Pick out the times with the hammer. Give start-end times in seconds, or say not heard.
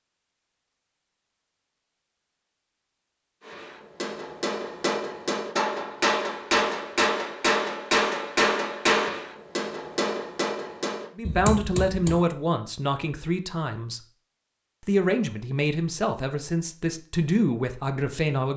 3.4-12.2.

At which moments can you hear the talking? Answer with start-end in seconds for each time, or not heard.
11.2-14.0, 14.8-18.5.